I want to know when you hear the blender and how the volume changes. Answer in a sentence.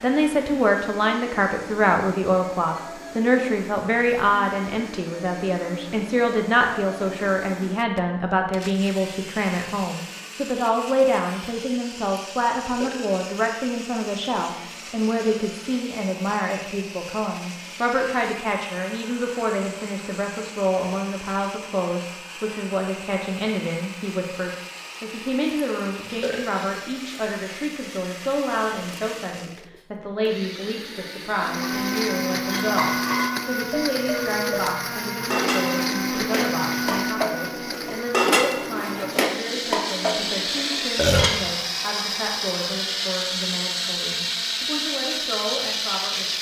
You can hear the blender from 0.0 to 46.3 s, getting louder.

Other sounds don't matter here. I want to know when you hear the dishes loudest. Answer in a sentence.
The loudest moment of the dishes is at 38 seconds.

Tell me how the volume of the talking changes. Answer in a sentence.
The loudness of the talking goes down.